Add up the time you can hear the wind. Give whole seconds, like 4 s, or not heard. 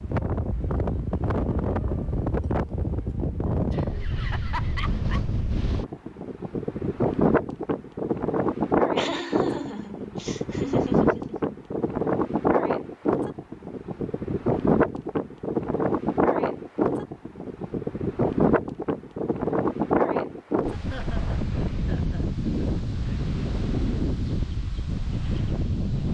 26 s.